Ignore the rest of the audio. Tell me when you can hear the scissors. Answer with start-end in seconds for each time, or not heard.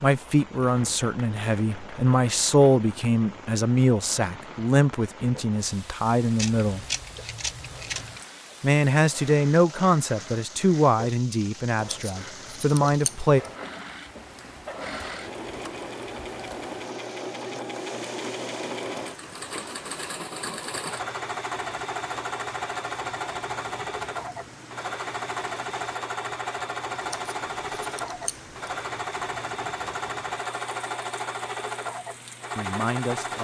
6.3-8.2, 11.8-13.5, 27.0-28.7.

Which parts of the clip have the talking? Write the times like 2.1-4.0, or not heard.
0.0-6.8, 8.6-13.4, 32.5-33.3.